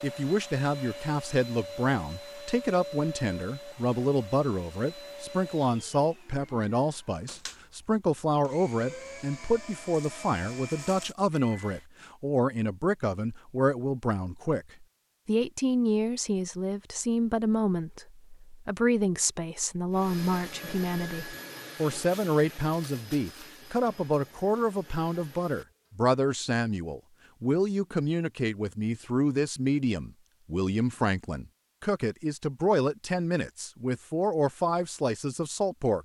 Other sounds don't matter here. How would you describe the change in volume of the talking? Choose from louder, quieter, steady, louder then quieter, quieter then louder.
steady.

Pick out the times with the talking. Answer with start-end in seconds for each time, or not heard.
0.0-36.0.